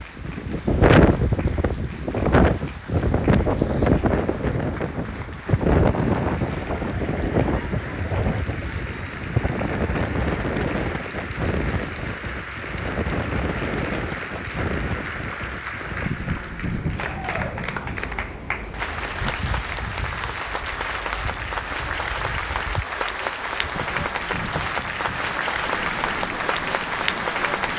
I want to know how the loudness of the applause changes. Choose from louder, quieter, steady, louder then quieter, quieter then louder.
louder.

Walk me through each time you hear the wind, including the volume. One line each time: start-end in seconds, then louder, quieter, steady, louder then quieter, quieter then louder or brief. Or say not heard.
0.0-27.7 quieter.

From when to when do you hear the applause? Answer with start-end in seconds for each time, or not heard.
0.0-27.7.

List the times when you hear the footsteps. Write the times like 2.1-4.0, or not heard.
not heard.